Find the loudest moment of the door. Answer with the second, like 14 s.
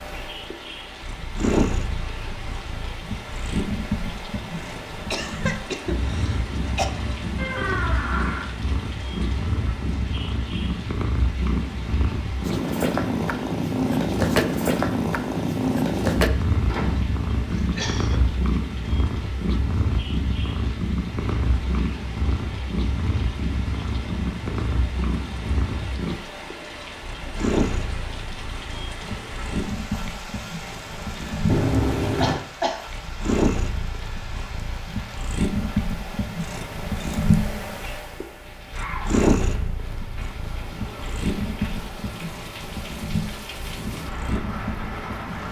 32 s.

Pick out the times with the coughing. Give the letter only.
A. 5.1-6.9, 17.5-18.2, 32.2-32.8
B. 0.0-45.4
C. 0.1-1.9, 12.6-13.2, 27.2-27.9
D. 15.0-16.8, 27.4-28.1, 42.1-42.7
A.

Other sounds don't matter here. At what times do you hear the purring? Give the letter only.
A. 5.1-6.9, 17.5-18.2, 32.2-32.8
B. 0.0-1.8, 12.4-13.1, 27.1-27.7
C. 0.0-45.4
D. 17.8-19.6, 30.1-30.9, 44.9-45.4
C.